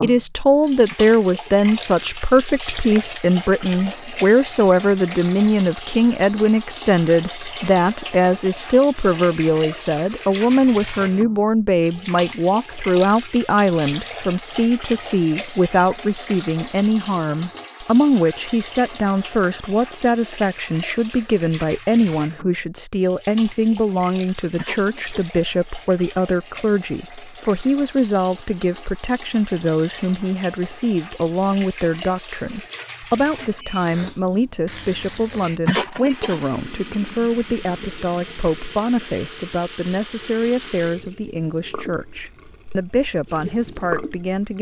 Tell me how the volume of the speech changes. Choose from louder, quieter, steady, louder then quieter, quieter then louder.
quieter.